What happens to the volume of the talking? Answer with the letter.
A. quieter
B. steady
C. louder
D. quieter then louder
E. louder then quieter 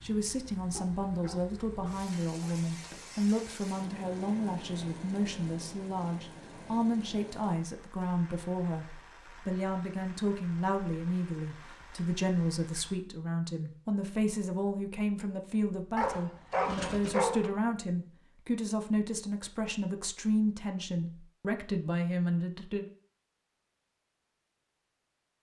B.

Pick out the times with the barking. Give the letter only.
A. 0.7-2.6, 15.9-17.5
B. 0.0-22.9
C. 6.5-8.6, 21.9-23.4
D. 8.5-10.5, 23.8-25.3
A.